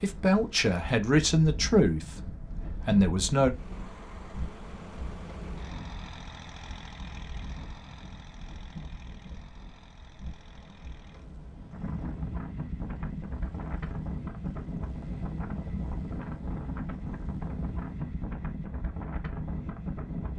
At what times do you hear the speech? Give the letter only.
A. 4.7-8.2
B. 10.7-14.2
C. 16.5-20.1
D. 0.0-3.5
D.